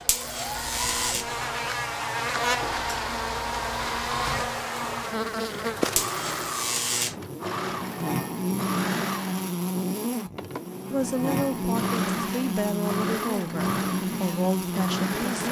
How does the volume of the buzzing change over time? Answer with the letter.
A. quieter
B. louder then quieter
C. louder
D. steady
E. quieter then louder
D.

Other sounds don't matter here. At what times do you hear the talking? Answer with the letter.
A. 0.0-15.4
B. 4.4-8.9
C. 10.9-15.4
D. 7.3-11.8
C.